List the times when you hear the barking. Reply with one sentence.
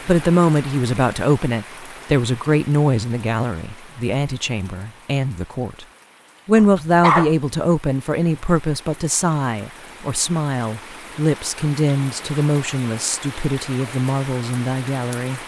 You can hear the barking from 6.5 to 7.3 s.